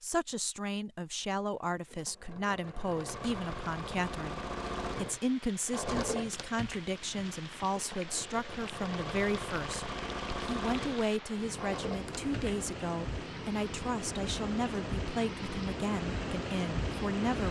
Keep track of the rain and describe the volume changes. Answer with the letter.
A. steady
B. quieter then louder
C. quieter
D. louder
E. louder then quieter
D.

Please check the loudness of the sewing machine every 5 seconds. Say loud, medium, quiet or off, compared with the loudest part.
loud, loud, loud, off.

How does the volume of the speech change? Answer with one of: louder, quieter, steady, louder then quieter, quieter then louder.
steady.